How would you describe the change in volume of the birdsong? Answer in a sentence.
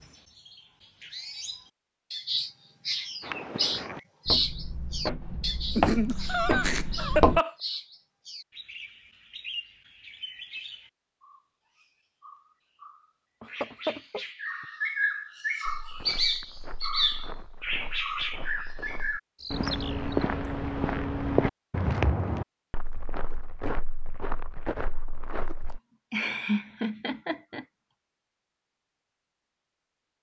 The loudness of the birdsong goes down, then up.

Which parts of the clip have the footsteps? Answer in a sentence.
The footsteps can be heard from 3.2 to 7.4 s and from 15.7 to 25.8 s.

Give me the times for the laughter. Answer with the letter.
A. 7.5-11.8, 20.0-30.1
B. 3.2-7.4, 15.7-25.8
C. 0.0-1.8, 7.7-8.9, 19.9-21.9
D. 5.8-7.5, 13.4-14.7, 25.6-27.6
D.